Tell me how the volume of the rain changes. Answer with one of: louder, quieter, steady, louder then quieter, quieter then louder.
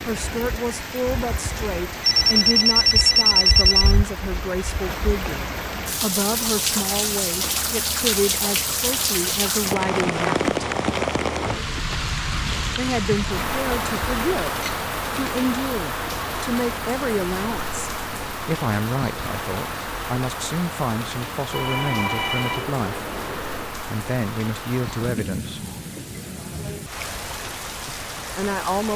louder then quieter.